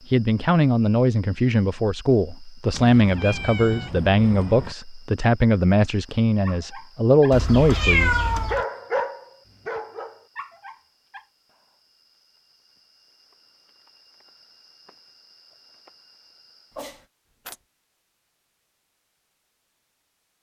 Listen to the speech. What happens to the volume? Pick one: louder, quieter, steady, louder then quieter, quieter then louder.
steady.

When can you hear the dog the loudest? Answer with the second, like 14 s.
9 s.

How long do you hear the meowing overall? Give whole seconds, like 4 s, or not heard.
4 s.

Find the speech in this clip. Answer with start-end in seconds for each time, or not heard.
0.1-8.2.